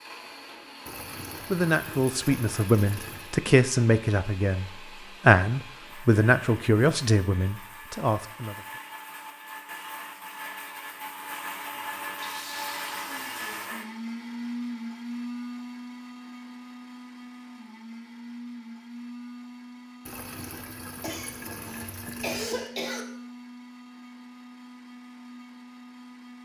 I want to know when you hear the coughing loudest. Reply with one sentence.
The volume of the coughing peaks at 22 seconds.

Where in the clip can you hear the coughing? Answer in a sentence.
You can hear the coughing from 21.0 to 23.1 s.